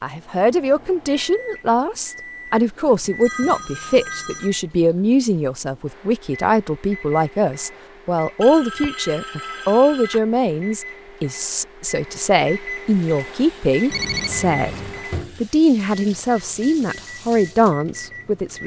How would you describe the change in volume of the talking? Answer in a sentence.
The loudness of the talking stays about the same.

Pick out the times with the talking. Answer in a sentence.
The talking can be heard from 0.0 to 14.8 s and from 15.4 to 18.6 s.